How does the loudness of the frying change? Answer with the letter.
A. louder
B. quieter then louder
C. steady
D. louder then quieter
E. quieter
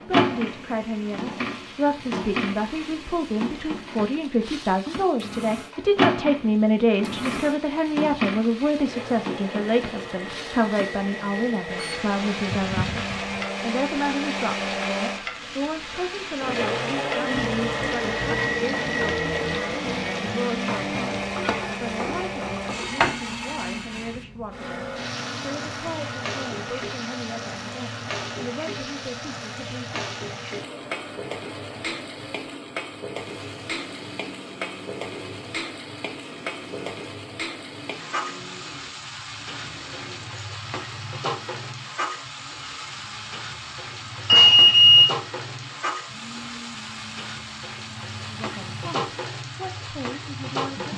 C.